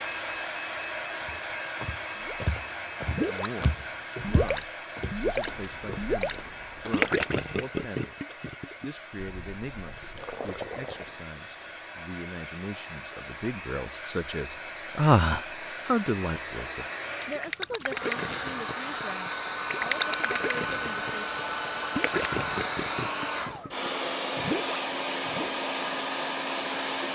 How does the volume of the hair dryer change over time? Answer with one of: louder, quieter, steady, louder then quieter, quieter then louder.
quieter then louder.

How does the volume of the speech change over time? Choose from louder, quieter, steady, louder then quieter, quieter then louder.
louder then quieter.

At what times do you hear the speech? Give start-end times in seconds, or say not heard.
3.2-8.2, 8.8-21.2.